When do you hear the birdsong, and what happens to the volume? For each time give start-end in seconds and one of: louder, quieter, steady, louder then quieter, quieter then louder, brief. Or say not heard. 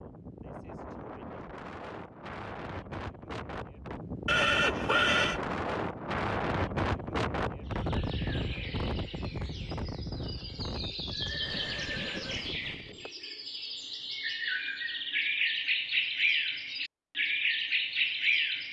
7.7-18.6 louder.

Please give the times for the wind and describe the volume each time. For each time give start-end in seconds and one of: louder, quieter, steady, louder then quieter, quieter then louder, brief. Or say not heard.
0.0-13.1 louder then quieter.